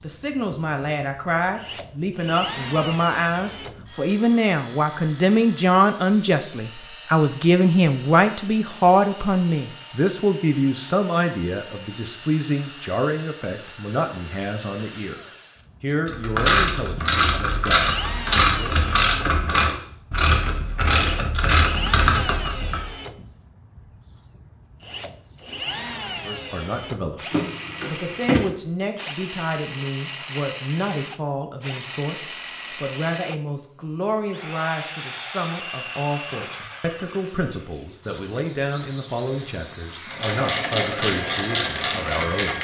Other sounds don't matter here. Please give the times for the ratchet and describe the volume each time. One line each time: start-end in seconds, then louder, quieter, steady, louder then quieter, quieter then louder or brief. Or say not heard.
16.1-22.9 steady
40.1-42.5 brief.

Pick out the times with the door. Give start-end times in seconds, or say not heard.
27.3-28.4.